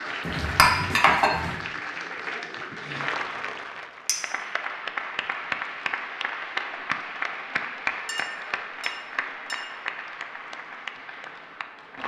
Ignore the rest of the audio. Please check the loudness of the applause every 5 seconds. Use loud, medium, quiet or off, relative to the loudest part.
loud, loud, medium.